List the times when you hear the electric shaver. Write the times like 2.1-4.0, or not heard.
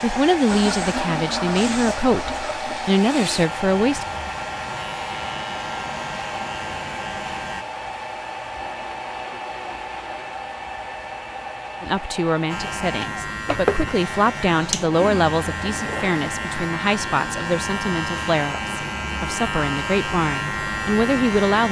0.0-7.7, 12.4-21.6.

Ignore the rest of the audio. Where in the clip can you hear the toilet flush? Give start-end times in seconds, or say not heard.
0.5-3.0, 8.6-10.2, 14.9-16.2.